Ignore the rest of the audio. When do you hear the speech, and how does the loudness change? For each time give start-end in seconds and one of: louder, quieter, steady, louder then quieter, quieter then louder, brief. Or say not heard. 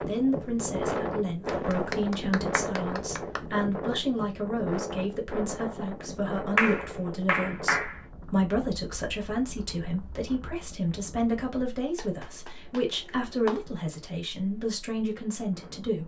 0.0-16.0 steady.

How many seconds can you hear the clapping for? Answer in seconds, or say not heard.
5 s.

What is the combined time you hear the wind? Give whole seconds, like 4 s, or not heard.
16 s.